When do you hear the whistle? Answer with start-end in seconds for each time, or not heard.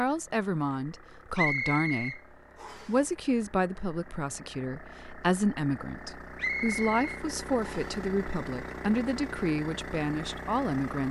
1.4-3.0, 6.3-8.0.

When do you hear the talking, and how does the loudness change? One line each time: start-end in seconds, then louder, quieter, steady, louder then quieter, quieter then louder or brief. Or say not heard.
0.0-2.2 brief
2.9-11.0 steady.